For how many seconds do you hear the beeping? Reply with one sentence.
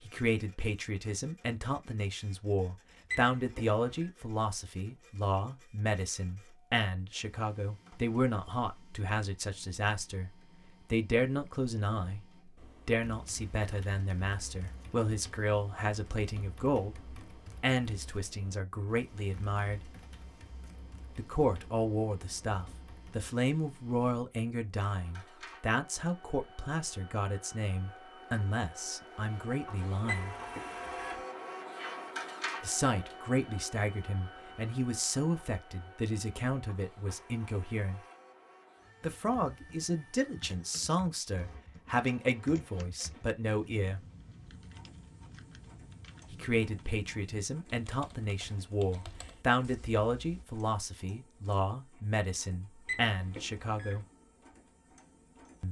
The beeping can be heard for 3 seconds in total.